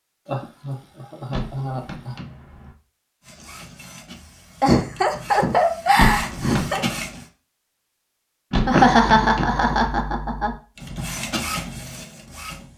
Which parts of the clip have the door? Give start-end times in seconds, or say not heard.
1.3-2.8, 6.0-6.7, 8.5-9.7.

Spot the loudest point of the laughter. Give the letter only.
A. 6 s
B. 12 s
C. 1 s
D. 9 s
D.